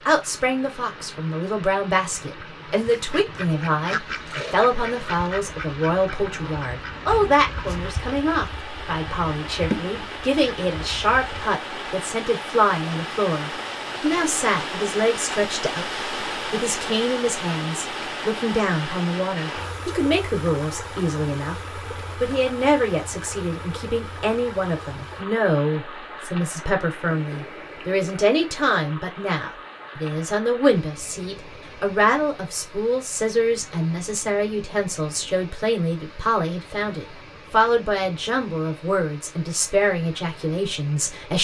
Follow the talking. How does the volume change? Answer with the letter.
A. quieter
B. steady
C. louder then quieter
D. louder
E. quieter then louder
B.